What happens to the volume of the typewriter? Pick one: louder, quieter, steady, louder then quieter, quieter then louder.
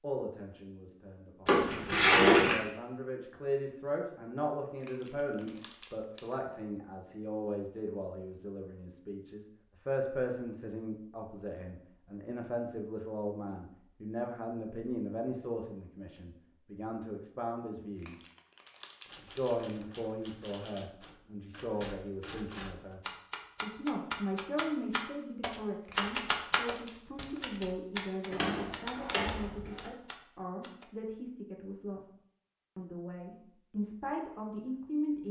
louder then quieter.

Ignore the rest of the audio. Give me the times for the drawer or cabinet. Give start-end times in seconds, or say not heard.
1.4-2.6, 28.3-29.9.